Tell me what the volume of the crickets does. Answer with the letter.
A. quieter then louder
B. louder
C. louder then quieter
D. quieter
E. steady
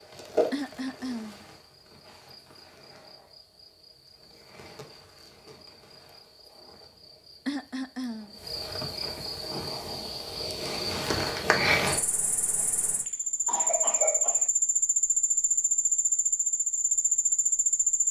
A.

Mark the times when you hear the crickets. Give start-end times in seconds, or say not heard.
0.0-18.0.